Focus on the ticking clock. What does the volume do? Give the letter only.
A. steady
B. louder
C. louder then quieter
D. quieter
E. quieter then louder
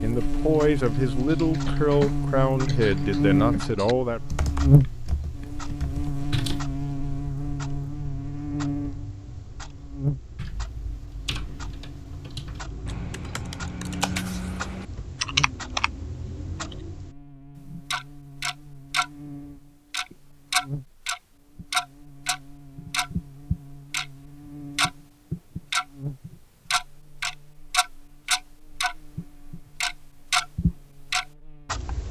B.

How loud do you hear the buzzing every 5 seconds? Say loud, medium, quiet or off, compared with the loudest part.
loud, medium, medium, quiet, quiet, quiet, quiet.